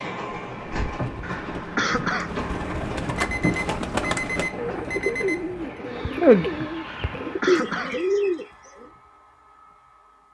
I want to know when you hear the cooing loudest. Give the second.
6 s.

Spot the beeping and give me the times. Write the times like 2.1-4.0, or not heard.
3.1-5.8.